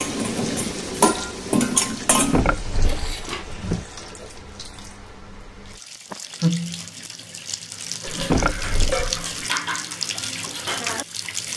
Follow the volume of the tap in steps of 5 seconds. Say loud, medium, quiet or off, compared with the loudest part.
medium, loud, loud.